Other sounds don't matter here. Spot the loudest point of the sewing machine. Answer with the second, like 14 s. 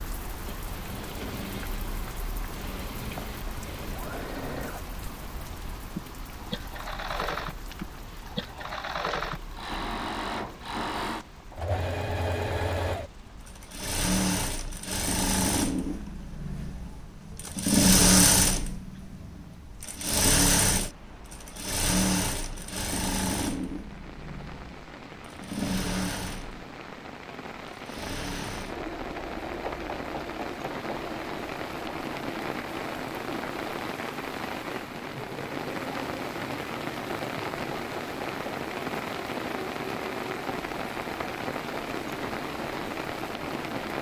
18 s.